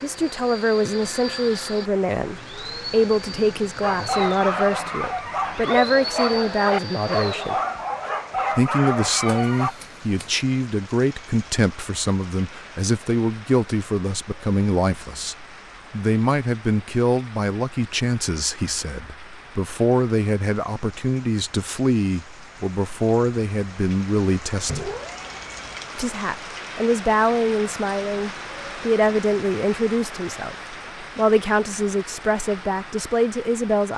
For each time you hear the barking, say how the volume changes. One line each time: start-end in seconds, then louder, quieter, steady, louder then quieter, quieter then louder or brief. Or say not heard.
3.8-9.8 steady.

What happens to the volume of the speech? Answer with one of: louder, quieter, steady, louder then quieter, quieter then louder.
steady.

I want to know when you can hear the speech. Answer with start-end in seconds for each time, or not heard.
0.0-7.6, 8.6-24.9, 25.9-33.9.